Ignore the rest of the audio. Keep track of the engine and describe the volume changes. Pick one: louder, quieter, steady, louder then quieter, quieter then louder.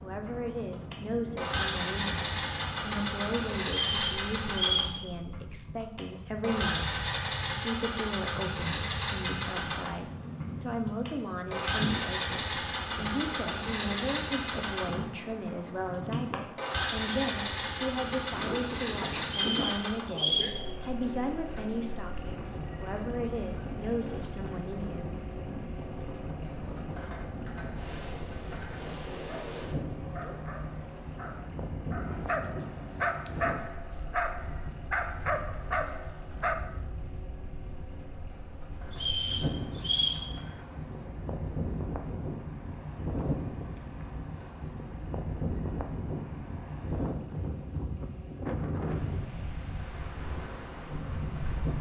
quieter.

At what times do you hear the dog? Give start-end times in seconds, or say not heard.
29.1-36.5.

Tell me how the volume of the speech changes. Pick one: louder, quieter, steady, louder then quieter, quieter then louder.
steady.